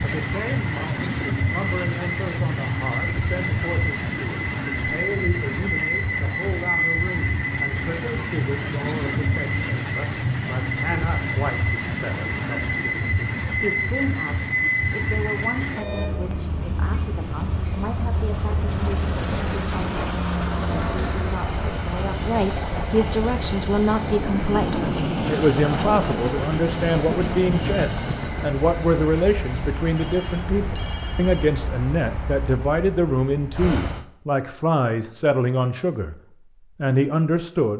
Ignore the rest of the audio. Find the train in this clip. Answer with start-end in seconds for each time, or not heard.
0.0-34.0.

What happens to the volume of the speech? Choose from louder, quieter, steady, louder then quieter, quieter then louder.
louder.